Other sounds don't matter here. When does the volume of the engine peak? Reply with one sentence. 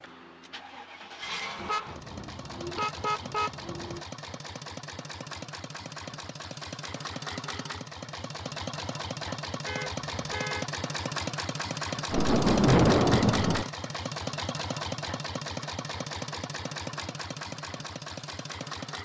The volume of the engine peaks at 13 seconds.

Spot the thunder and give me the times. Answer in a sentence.
You can hear the thunder from 12.1 to 13.7 s.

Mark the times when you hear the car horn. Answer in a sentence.
The car horn can be heard from 1.6 to 4.0 s and from 9.7 to 10.7 s.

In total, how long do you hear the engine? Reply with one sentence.
The engine can be heard for 19 seconds in total.